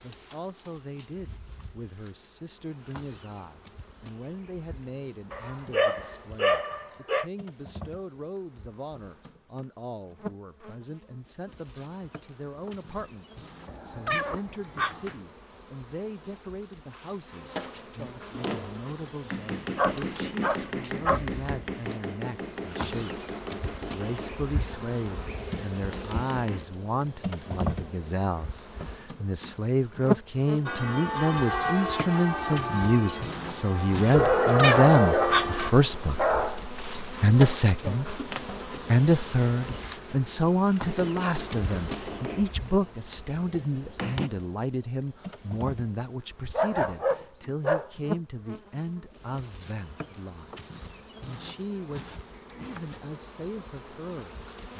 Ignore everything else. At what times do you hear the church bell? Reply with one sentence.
The church bell can be heard from 30.6 to 35.8 s.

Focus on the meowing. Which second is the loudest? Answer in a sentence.
The loudest moment of the meowing is at 35 seconds.